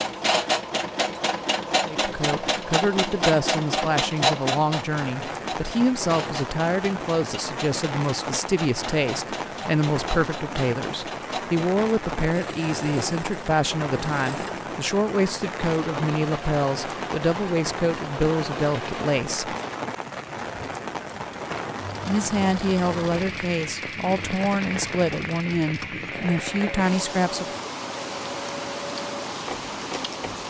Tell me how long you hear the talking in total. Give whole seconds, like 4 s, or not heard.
23 s.